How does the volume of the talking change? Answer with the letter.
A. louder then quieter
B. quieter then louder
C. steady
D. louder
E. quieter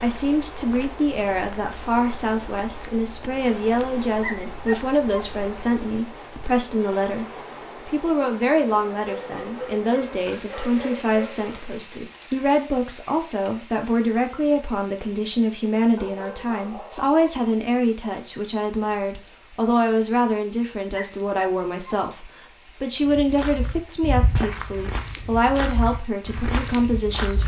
C.